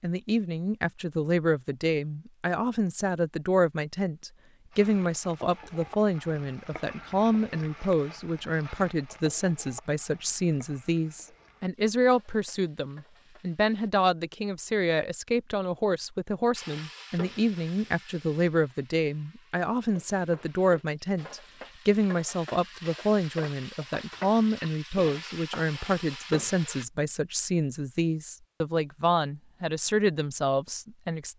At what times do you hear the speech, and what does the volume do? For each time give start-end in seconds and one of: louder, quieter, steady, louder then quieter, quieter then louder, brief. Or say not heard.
0.0-31.3 steady.